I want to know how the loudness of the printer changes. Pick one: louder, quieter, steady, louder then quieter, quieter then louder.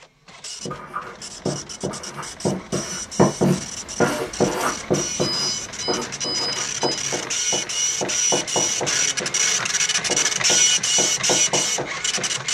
louder.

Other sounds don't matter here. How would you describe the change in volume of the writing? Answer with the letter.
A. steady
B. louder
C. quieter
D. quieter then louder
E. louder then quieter
E.